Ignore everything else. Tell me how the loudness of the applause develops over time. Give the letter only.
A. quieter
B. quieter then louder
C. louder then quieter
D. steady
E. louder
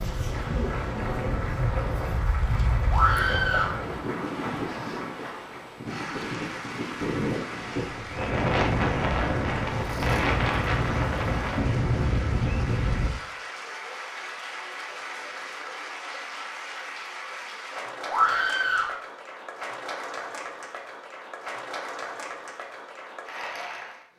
D.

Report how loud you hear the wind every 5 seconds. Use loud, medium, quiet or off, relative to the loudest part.
medium, loud, loud, off, off.